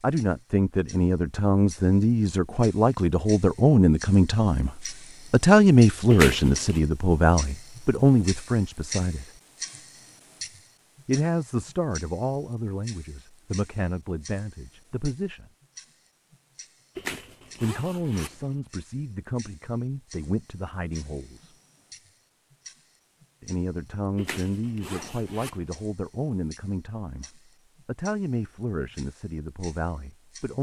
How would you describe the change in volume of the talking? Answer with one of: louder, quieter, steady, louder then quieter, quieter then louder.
quieter.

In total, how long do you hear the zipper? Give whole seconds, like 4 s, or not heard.
4 s.